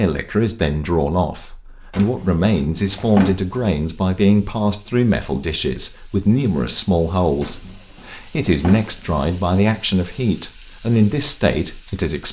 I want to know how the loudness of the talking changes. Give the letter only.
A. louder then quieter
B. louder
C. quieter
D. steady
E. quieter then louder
D.